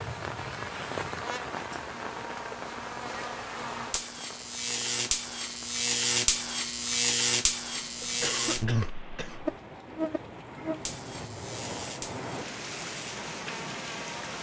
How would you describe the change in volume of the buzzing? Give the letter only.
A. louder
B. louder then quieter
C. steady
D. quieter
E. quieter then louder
B.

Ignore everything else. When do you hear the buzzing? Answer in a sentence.
You can hear the buzzing from 0.0 to 14.3 s.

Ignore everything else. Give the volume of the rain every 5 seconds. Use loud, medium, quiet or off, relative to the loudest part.
loud, medium, loud.